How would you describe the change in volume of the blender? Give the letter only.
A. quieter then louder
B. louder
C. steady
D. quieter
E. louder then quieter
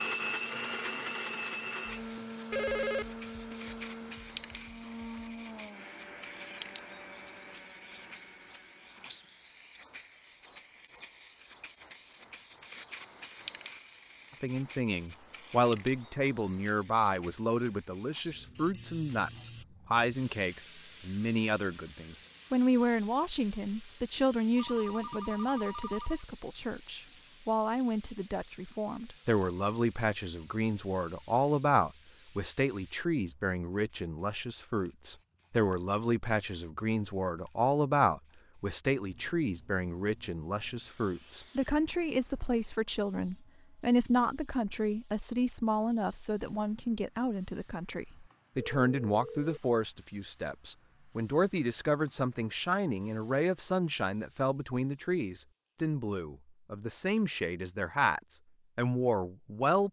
D.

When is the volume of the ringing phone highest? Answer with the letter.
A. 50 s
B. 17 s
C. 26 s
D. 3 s
D.